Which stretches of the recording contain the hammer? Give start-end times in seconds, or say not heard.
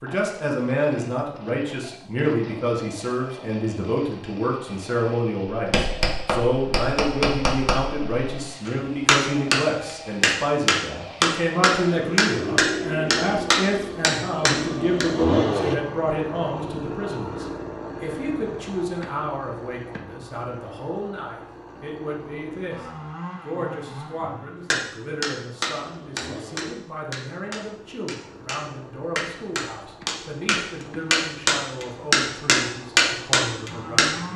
5.5-15.1, 24.7-34.1.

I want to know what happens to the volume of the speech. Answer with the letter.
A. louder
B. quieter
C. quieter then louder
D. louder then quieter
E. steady
B.